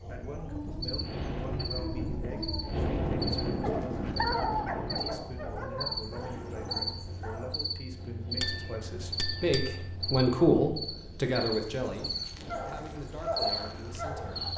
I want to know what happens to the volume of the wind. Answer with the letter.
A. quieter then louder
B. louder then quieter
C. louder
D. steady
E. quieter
E.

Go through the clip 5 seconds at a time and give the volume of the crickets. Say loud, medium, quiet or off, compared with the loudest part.
medium, loud, loud.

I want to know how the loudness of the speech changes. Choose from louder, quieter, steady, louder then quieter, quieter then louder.
louder then quieter.